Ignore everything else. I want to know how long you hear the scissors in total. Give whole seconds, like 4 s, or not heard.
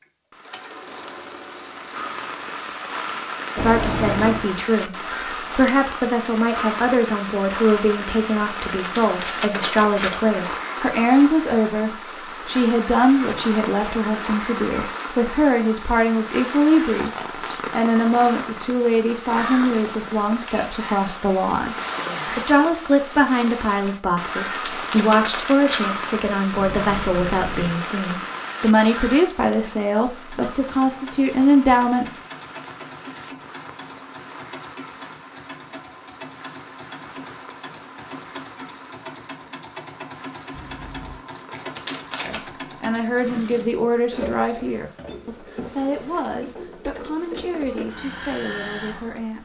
3 s.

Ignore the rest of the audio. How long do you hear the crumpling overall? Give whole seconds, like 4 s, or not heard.
4 s.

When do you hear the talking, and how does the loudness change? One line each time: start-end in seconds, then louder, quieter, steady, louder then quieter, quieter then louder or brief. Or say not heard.
3.5-17.1 steady
17.7-32.1 steady
42.2-49.4 quieter.